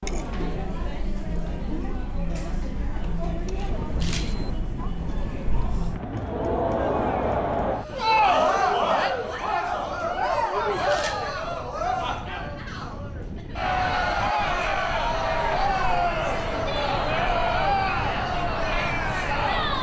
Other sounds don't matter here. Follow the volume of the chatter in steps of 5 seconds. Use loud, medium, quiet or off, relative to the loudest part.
medium, loud, loud, loud.